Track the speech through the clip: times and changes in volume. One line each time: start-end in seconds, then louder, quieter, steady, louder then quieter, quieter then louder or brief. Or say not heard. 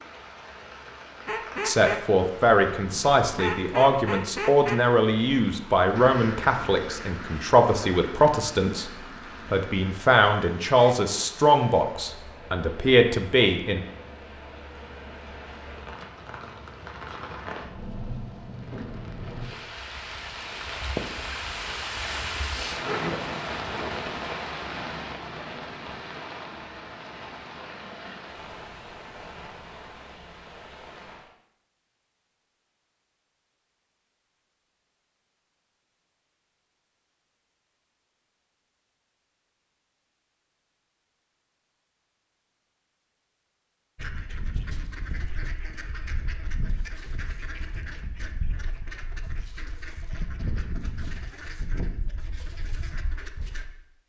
1.6-8.9 steady
9.5-13.8 quieter then louder.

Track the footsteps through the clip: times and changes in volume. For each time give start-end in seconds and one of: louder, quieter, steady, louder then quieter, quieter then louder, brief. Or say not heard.
not heard.